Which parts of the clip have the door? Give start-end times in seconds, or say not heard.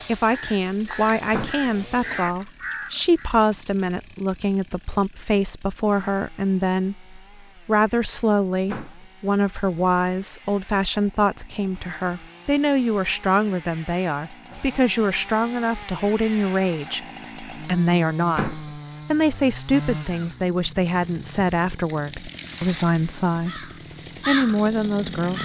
1.3-1.8, 8.7-9.1, 18.4-18.8.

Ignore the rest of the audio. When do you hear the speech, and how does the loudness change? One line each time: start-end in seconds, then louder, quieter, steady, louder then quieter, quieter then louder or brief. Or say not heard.
0.1-25.3 steady.